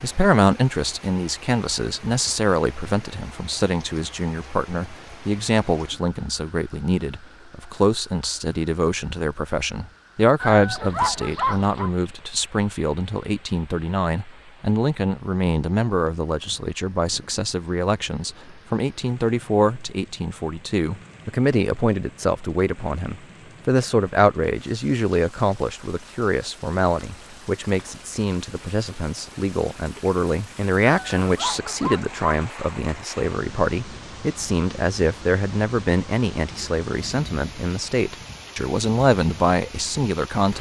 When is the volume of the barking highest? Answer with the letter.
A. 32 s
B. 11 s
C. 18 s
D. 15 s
B.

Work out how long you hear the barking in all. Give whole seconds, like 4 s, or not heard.
3 s.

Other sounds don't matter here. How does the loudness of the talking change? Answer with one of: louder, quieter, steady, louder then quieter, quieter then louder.
steady.